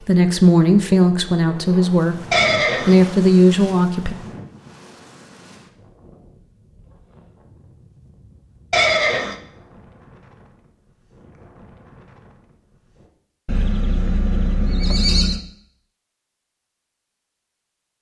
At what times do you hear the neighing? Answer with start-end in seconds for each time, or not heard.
2.3-3.1, 8.7-9.3, 13.4-15.4.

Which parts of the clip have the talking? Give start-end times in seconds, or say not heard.
0.1-4.2.